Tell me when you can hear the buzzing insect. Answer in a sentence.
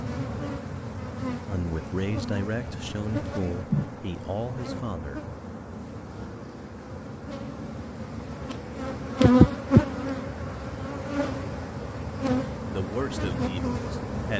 The buzzing insect can be heard from 0.0 to 14.3 s.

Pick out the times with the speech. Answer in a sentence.
The speech can be heard from 1.4 to 5.2 s and from 12.7 to 14.3 s.